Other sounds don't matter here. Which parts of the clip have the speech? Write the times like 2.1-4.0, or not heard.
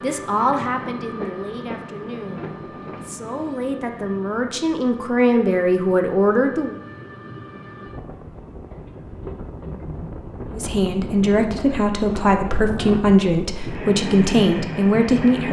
0.0-6.8, 10.5-15.4.